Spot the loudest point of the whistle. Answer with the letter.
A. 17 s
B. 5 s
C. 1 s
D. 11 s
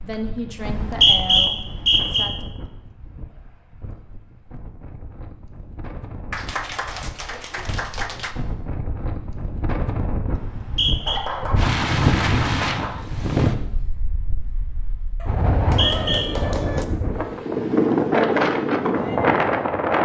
C.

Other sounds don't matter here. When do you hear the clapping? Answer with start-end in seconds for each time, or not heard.
0.1-1.5, 6.3-8.3, 11.1-13.1, 15.2-16.9.